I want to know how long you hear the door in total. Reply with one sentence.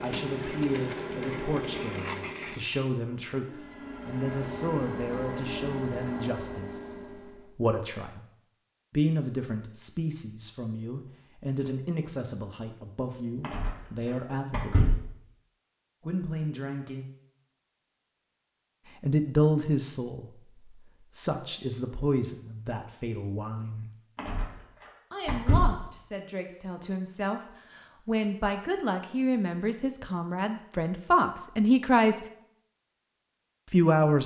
The door can be heard for 3 seconds in total.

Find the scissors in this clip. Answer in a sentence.
The scissors can be heard from 1.7 to 2.8 s.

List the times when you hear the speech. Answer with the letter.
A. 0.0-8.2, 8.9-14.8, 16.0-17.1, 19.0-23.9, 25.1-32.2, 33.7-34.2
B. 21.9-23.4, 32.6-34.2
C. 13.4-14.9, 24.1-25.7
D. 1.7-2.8
A.